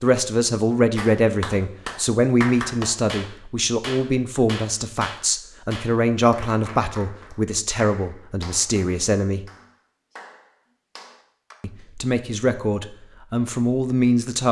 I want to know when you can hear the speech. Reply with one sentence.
The speech can be heard from 0.0 to 9.4 s and from 11.6 to 14.4 s.